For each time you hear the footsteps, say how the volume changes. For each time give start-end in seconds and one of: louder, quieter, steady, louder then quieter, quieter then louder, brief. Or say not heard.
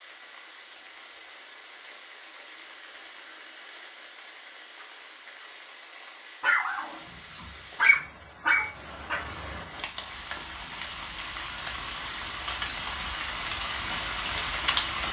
not heard.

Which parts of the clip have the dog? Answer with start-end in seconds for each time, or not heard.
6.4-9.2.